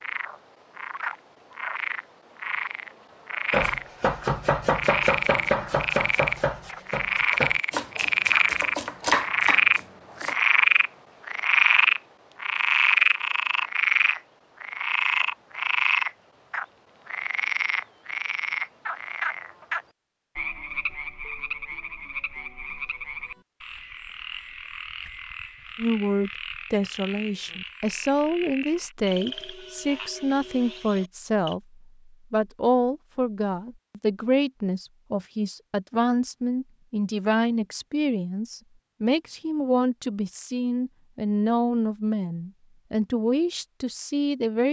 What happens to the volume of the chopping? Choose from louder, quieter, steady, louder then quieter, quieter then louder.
quieter then louder.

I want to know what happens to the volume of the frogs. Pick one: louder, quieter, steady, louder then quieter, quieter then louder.
louder then quieter.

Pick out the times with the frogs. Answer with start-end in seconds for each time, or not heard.
0.0-31.6.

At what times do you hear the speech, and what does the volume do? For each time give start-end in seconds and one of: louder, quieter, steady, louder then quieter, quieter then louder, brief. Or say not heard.
25.8-44.6 steady.